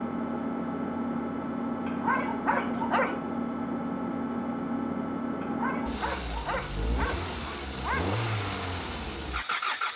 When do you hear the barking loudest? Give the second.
3 s.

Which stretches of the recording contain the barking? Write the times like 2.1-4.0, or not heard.
1.9-3.2, 5.4-8.2.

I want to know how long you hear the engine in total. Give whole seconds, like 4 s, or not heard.
10 s.